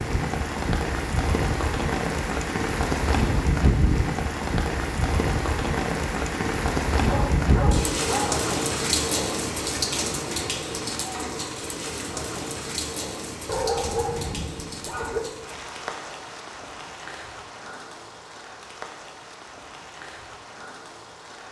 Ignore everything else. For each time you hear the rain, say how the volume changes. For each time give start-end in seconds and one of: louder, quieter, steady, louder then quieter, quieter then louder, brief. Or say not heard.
0.0-21.4 quieter.